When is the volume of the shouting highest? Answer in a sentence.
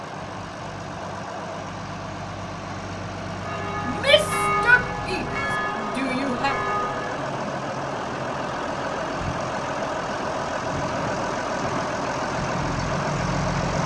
The volume of the shouting peaks at 5 seconds.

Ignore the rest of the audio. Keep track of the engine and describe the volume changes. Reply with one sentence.
The loudness of the engine goes up.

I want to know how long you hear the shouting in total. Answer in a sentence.
You can hear the shouting for 3 seconds altogether.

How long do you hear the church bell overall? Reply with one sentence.
You can hear the church bell for 4 seconds altogether.